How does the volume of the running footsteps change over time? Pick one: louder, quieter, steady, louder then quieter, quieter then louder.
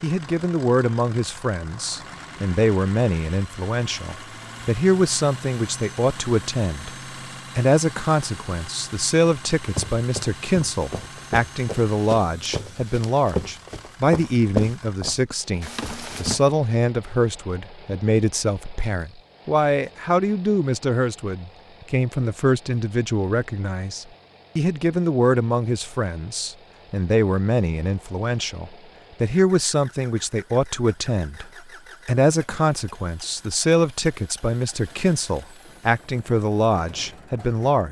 louder then quieter.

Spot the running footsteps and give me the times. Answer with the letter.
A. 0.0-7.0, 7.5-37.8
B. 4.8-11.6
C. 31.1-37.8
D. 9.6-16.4
D.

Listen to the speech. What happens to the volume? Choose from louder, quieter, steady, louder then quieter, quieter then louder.
steady.